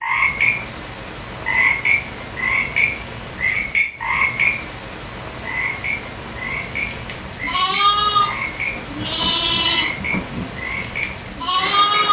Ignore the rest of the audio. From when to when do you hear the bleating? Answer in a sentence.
The bleating can be heard from 6.8 to 12.0 s.